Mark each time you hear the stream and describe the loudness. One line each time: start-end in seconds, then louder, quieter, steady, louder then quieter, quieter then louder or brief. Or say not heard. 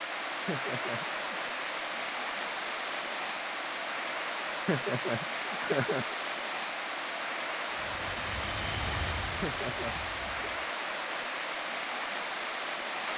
0.0-13.1 steady.